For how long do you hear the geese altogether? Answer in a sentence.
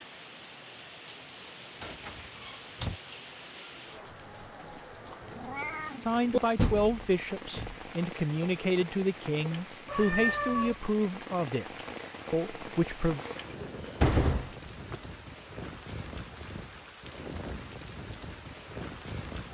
You can't hear the geese here.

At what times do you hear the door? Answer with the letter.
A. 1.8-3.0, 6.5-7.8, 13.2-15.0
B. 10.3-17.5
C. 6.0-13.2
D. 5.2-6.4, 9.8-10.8
A.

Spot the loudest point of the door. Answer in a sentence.
The loudest moment of the door is at 14 seconds.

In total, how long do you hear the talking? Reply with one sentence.
The talking can be heard for 7 seconds in total.